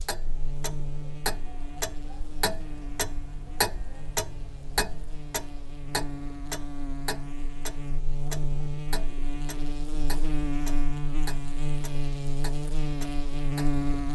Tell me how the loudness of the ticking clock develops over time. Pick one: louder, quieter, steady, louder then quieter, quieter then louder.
quieter.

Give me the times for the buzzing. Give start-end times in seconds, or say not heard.
0.0-14.1.